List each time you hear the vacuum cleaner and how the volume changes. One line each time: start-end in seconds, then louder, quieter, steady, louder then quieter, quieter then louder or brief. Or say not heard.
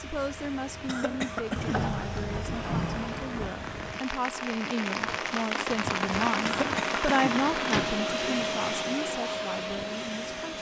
0.0-10.5 louder.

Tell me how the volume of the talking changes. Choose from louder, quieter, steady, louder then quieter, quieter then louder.
louder then quieter.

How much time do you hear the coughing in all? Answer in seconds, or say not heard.
2 s.